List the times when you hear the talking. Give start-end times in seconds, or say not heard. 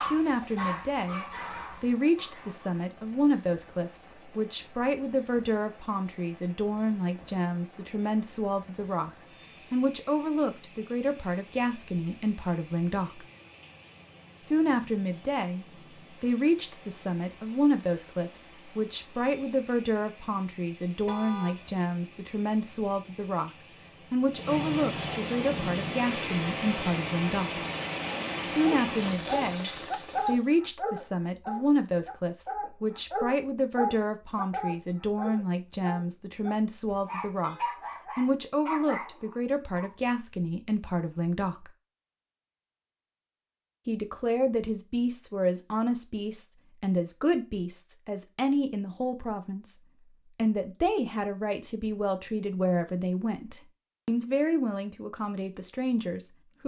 0.0-13.2, 14.4-27.6, 28.4-41.7, 43.9-49.8, 50.4-56.6.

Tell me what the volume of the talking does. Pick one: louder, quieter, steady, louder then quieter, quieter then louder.
steady.